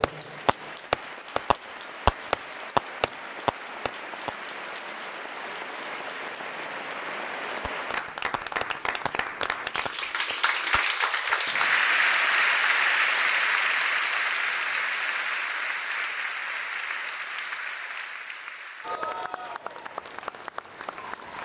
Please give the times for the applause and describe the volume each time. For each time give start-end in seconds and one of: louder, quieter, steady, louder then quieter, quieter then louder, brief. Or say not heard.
0.0-21.4 louder then quieter.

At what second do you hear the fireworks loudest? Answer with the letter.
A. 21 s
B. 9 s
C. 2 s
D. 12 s
C.